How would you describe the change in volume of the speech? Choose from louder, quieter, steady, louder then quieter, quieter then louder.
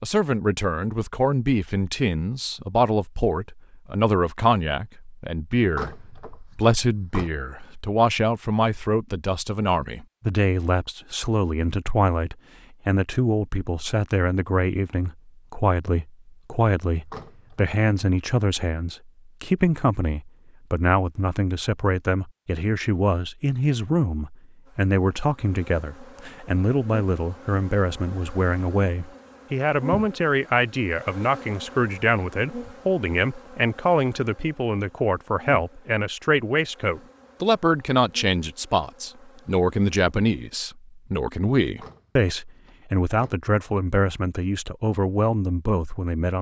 steady.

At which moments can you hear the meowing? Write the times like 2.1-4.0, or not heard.
not heard.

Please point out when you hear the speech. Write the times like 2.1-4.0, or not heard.
0.0-46.3.